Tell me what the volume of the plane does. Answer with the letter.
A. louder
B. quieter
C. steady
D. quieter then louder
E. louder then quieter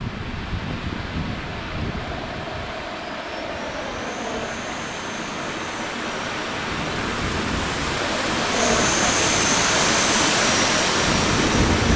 A.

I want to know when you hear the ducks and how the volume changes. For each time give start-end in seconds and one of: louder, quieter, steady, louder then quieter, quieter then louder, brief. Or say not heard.
not heard.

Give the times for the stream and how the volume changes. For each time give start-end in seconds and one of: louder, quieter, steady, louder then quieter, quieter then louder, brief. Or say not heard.
0.0-11.9 louder.